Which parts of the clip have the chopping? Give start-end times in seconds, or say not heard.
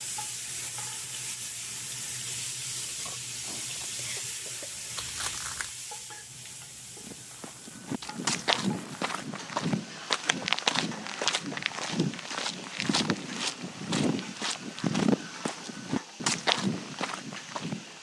not heard.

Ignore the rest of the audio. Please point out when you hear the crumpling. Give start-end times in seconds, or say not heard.
5.0-5.8.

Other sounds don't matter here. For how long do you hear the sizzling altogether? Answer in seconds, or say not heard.
18 s.